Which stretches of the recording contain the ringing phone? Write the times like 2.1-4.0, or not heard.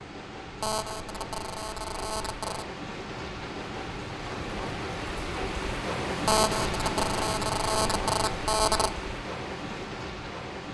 0.6-2.7, 6.2-8.9.